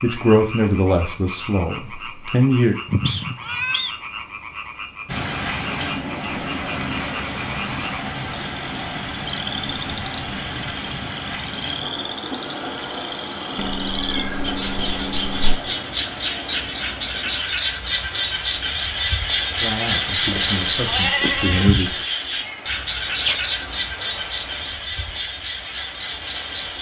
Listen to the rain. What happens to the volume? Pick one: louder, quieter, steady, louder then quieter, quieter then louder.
quieter.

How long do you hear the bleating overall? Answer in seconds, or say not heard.
2 s.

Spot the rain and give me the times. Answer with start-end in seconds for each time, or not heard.
5.0-26.7.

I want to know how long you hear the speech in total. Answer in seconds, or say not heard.
5 s.